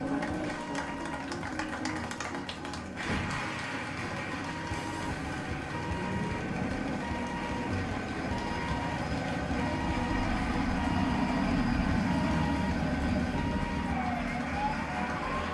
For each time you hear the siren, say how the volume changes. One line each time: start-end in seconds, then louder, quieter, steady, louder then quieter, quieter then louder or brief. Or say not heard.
0.0-15.5 steady.